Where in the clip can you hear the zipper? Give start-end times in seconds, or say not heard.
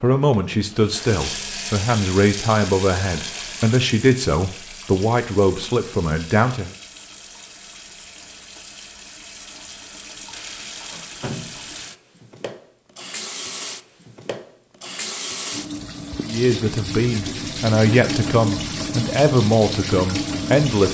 not heard.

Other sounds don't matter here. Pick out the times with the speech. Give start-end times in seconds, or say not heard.
0.0-6.8, 16.2-20.9.